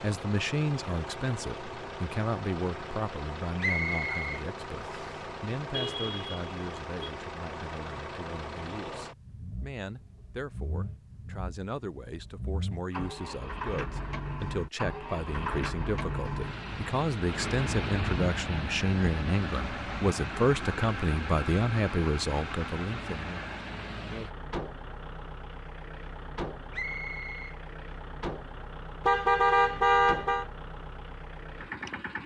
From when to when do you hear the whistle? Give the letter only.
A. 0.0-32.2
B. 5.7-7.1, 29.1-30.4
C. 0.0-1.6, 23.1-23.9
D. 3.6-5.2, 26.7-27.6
D.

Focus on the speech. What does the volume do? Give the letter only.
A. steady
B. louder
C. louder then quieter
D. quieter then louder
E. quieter
D.